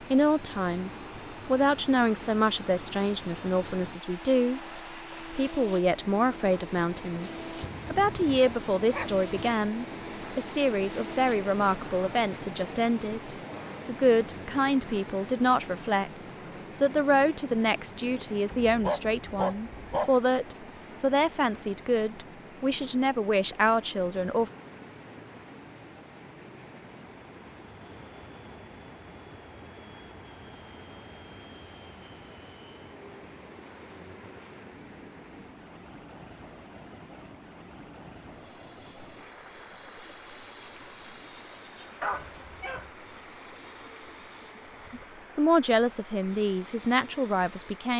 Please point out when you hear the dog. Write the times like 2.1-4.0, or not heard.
7.6-9.6, 18.6-20.1, 42.0-42.9.